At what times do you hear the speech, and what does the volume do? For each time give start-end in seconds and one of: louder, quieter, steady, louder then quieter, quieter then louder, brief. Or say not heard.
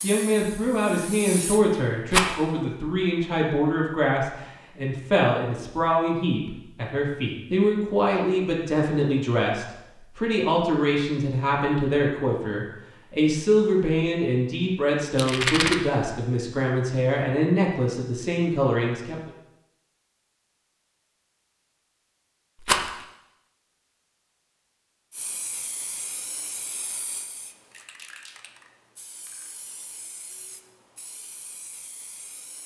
0.0-19.3 steady.